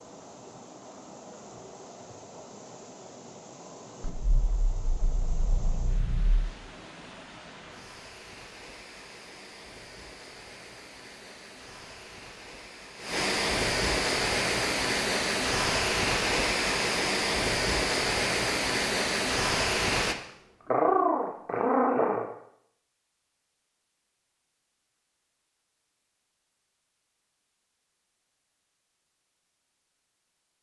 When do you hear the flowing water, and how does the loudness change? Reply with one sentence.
The flowing water can be heard from 0.0 to 20.1 s, getting louder.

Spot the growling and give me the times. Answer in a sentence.
You can hear the growling from 4.2 to 6.5 s and from 20.7 to 22.3 s.